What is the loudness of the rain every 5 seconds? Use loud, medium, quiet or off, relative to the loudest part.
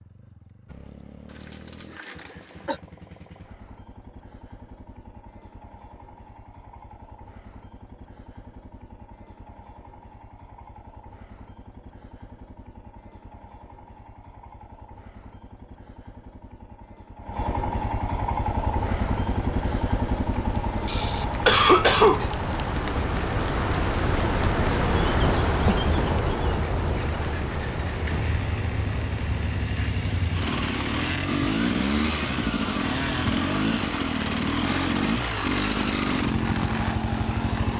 off, off, off, medium, loud, loud, medium, medium.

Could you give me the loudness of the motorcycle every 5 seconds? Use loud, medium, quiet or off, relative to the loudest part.
quiet, quiet, quiet, medium, medium, medium, loud, loud.